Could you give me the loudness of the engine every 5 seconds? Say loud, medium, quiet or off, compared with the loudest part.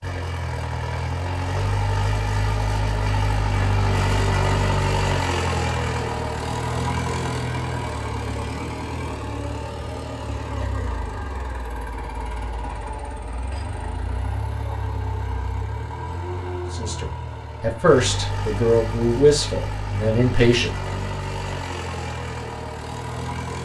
loud, loud, medium, medium, medium.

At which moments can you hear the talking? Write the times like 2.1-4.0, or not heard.
16.7-20.9.